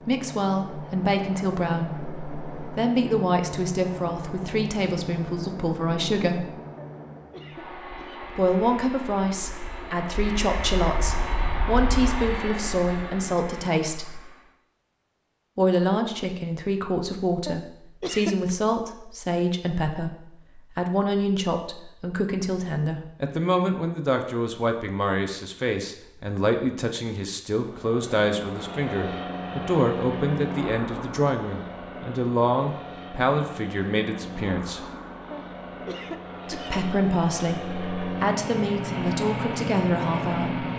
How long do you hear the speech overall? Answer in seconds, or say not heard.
36 s.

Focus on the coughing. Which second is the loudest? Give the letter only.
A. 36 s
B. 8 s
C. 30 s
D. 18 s
D.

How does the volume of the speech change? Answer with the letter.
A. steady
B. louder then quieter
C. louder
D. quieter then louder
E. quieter
A.